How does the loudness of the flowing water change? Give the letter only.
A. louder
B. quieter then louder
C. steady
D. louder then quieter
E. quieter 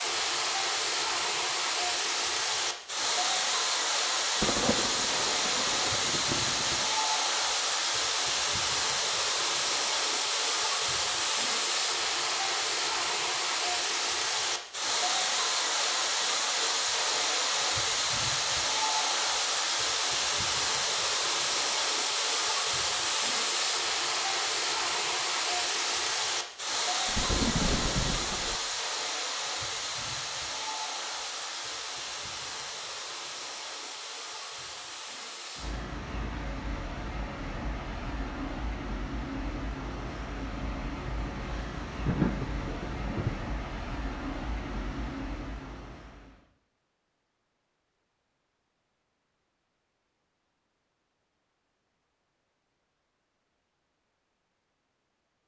E.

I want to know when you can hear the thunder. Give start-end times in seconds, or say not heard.
4.4-6.8, 27.1-28.6, 41.9-43.5.